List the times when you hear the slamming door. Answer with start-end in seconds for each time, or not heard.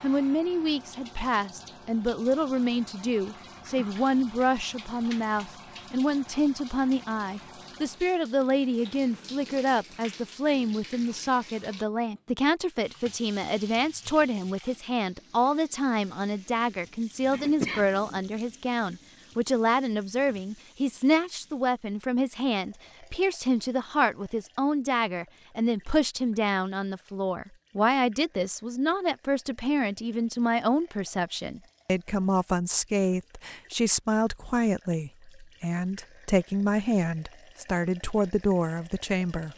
not heard.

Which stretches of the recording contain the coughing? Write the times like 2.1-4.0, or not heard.
17.3-17.9.